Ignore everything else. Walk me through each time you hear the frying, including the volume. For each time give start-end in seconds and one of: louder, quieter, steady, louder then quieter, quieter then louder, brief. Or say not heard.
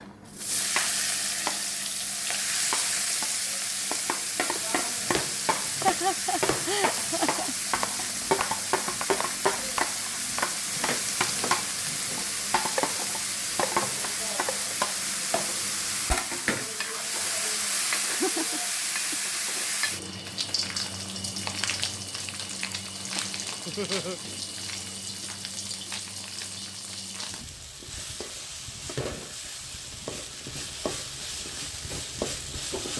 0.0-32.9 quieter.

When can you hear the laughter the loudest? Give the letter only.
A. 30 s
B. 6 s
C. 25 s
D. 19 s
B.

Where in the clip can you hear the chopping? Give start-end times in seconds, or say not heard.
4.5-14.8.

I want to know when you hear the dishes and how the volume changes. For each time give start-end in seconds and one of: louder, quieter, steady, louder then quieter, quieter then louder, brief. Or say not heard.
not heard.